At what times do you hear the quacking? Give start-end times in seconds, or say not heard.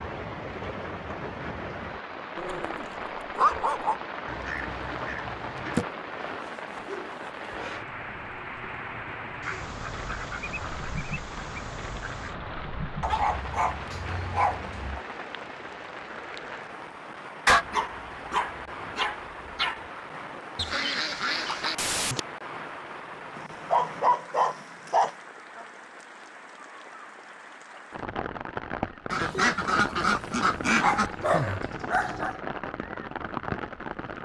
4.2-5.8, 9.4-12.3, 20.6-22.2, 29.1-31.1.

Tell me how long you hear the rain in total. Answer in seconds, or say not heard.
34 s.